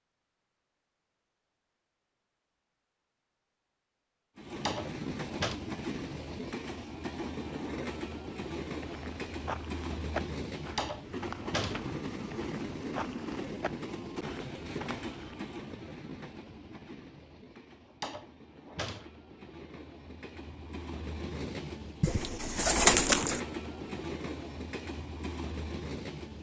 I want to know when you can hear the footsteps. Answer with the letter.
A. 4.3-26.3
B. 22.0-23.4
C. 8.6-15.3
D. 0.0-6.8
C.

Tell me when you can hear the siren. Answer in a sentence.
You can't hear the siren here.